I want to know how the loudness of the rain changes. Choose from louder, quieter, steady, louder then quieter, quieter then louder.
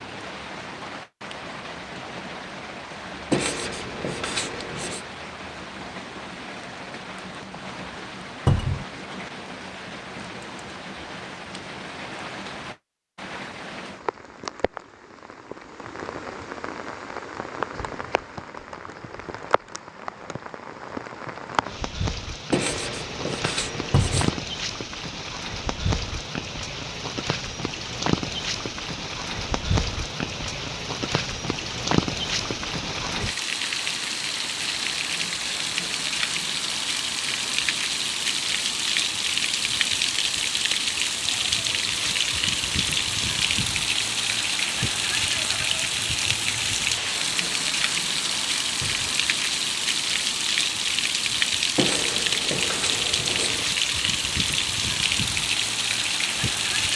louder.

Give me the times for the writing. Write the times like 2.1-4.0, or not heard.
3.3-5.0, 22.5-24.4, 51.8-53.6.